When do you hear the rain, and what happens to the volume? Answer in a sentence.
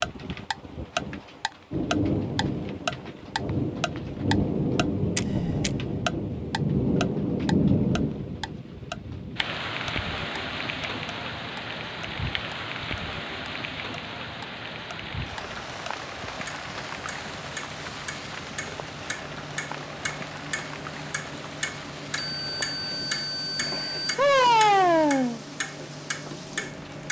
You can hear the rain from 0.0 to 27.0 s, getting quieter.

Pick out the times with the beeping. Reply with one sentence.
The beeping can be heard from 22.1 to 24.1 s.